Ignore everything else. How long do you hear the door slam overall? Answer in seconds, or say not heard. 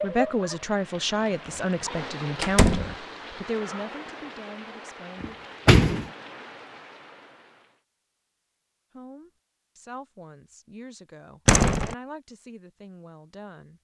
2 s.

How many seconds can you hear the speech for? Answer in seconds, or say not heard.
10 s.